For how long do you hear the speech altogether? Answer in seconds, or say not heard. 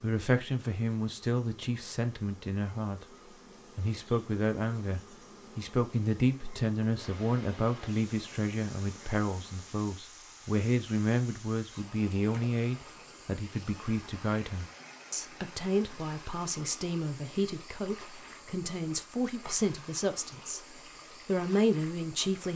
22 s.